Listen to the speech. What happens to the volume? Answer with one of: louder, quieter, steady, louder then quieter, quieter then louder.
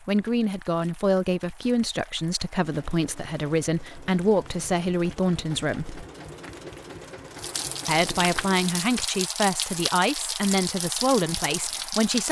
steady.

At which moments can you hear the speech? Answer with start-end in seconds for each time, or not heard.
0.1-6.0, 7.8-12.2.